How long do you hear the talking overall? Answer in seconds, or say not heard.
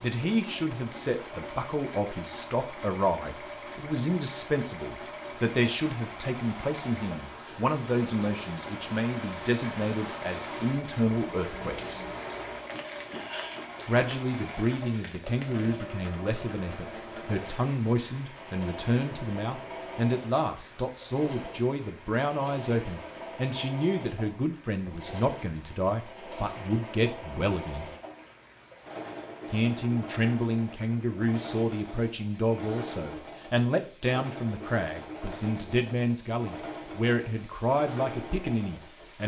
36 s.